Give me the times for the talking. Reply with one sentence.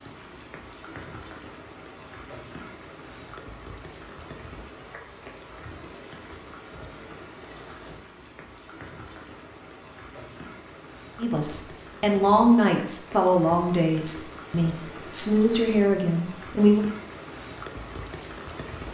The talking can be heard from 11.2 to 16.8 s.